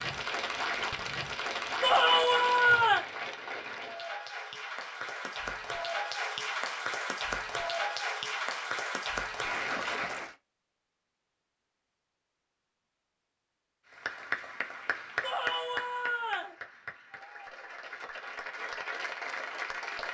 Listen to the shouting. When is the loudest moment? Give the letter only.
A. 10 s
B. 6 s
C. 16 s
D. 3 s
D.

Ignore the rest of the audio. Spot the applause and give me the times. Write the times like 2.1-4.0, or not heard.
0.0-10.3, 13.9-20.0.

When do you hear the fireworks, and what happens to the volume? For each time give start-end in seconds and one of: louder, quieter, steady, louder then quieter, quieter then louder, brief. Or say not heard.
not heard.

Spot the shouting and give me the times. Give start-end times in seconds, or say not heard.
1.8-3.0, 15.2-16.6.